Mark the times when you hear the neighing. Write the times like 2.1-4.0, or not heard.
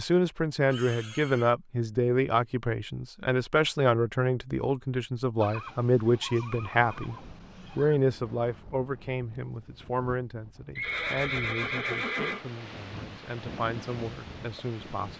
0.6-1.6, 5.4-8.0, 10.8-12.4.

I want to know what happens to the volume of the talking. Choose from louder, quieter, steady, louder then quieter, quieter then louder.
quieter.